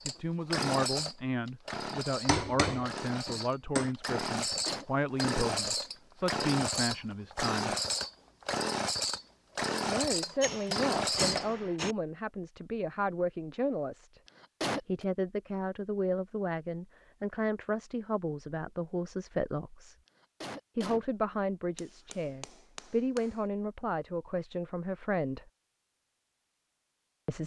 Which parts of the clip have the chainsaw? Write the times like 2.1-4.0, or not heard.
0.0-11.5.